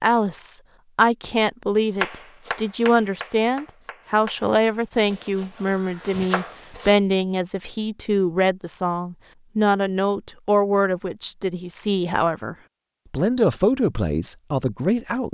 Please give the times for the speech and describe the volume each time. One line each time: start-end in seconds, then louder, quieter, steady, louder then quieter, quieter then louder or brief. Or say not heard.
0.0-15.2 steady.